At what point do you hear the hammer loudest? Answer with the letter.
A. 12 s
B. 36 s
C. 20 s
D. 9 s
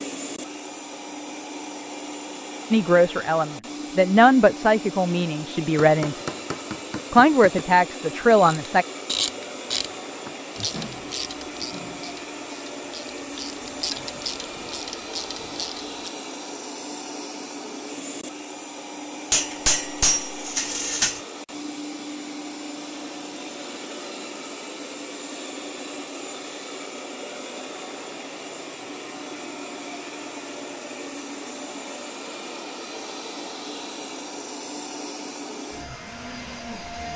C.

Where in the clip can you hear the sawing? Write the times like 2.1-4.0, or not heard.
not heard.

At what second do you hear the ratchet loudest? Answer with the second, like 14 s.
9 s.